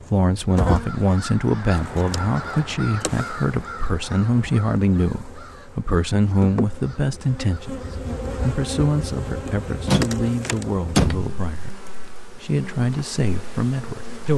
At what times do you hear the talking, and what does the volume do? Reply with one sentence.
The talking can be heard from 0.1 to 14.3 s, at a steady volume.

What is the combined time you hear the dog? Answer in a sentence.
You can't hear the dog here.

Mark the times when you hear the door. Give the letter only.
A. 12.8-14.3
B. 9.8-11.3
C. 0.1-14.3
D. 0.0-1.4
B.